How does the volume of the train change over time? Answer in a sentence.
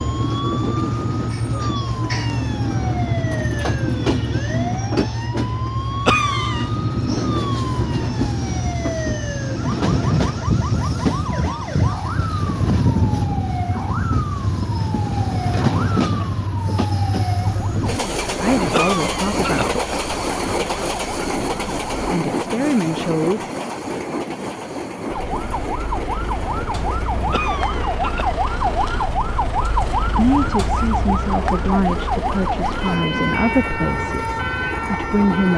The loudness of the train goes down.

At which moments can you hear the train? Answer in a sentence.
The train can be heard from 0.0 to 35.5 s.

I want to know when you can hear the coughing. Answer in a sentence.
The coughing can be heard from 6.0 to 6.7 s, from 18.7 to 19.8 s and from 27.3 to 28.4 s.